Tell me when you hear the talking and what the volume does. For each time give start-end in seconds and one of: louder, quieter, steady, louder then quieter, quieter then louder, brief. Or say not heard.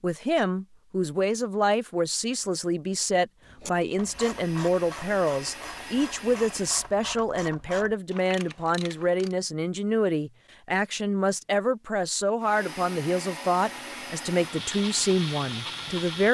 0.0-16.3 steady.